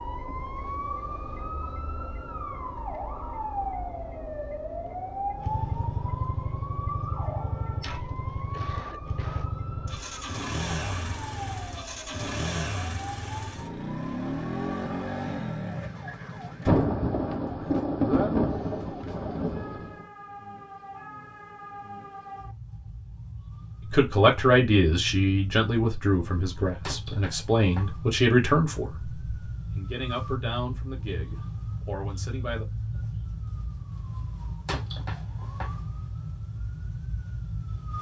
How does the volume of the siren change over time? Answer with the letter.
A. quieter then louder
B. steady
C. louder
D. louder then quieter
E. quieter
A.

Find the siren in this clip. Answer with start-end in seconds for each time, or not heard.
0.0-37.9.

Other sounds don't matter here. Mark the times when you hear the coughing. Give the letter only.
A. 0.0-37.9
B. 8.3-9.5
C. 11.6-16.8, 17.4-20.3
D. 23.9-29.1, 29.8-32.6
B.